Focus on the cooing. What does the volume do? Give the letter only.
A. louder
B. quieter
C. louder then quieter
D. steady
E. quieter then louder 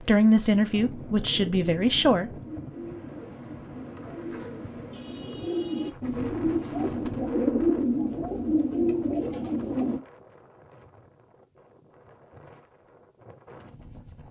A.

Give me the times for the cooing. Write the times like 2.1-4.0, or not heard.
0.8-10.0.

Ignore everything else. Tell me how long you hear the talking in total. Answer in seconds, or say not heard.
2 s.